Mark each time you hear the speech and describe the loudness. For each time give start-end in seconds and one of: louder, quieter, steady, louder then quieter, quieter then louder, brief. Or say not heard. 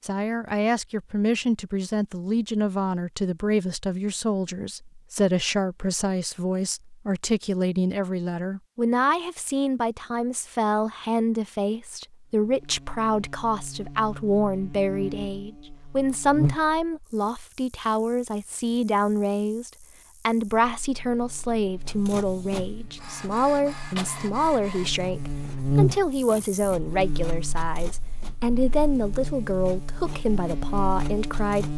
0.0-31.7 steady.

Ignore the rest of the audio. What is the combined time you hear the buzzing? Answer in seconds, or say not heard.
19 s.